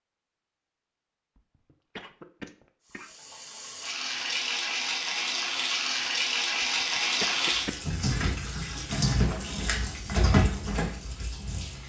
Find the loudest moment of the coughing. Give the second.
7 s.